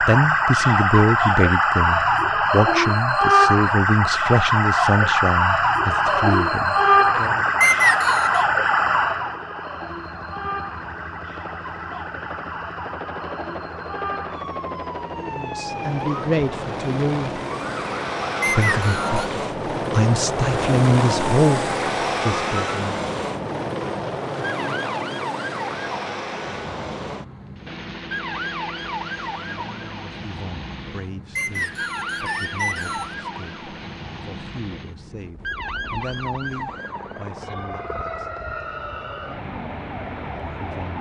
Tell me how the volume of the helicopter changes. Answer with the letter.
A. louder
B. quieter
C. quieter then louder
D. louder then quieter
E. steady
D.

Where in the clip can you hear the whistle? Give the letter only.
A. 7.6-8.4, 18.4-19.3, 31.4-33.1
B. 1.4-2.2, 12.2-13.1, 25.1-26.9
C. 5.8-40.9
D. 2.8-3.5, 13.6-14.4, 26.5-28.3
A.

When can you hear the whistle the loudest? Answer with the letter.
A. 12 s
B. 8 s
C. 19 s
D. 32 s
B.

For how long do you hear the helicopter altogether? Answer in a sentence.
You can hear the helicopter for 35 seconds altogether.